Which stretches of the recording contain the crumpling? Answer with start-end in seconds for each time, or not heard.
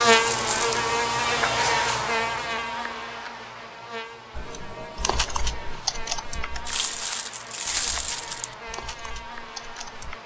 0.1-0.8, 6.7-8.6.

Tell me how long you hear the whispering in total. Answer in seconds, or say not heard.
not heard.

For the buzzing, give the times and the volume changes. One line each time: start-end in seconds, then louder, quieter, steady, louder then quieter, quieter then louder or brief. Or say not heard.
0.0-10.2 quieter.